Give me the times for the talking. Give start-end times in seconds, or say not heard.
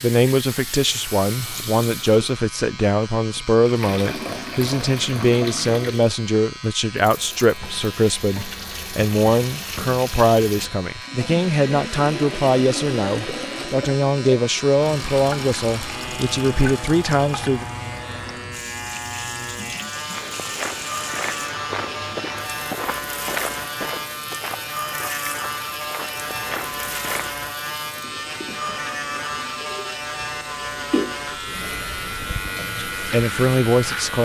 0.0-17.6, 33.0-34.2.